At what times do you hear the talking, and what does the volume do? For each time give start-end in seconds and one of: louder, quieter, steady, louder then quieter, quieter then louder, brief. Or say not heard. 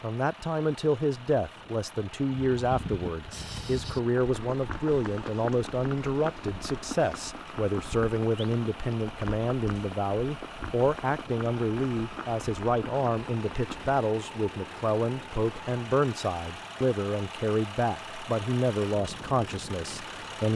0.0-20.5 steady.